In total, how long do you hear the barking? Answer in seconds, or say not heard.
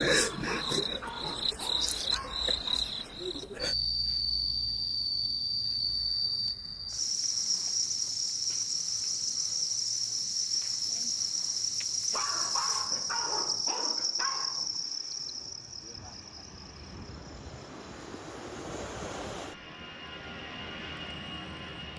5 s.